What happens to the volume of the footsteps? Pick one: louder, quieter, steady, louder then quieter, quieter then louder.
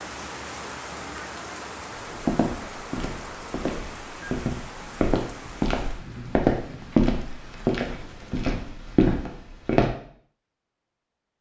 louder.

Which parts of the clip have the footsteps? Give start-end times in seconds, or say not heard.
2.0-9.9.